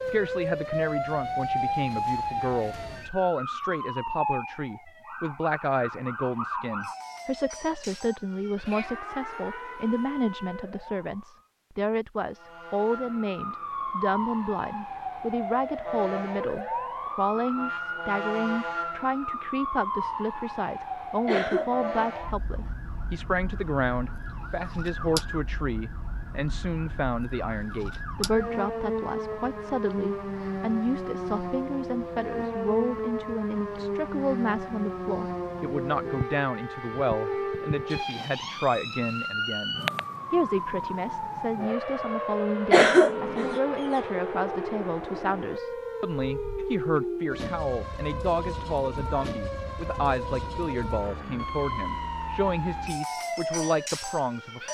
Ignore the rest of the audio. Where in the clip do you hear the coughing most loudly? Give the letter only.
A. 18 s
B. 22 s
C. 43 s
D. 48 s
C.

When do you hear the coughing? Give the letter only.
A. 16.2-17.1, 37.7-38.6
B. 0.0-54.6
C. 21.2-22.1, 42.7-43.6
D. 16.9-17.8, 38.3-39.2
C.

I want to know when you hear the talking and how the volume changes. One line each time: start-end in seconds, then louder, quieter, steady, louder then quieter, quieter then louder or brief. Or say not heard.
0.0-54.6 steady.